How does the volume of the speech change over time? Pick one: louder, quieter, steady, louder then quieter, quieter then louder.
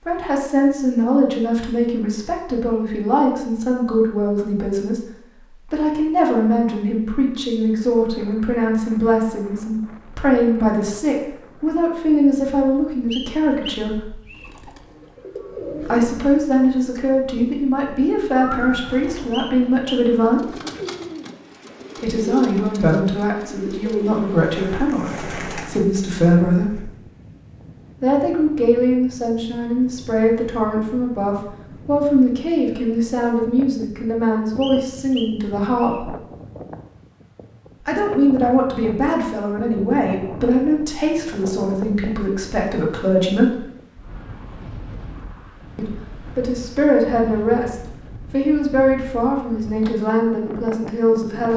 steady.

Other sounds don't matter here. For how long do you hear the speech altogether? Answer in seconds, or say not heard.
43 s.